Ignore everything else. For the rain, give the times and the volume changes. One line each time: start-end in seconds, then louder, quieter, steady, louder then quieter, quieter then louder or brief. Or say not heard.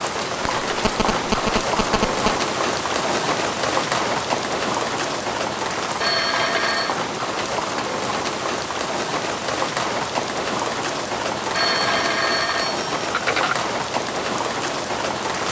0.0-15.4 steady.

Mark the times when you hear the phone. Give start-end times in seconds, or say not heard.
0.5-2.3, 6.0-7.0, 11.5-13.6.